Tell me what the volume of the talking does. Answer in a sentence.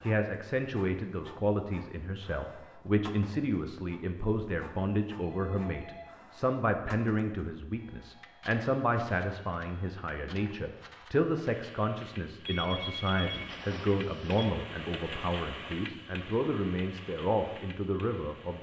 The loudness of the talking stays about the same.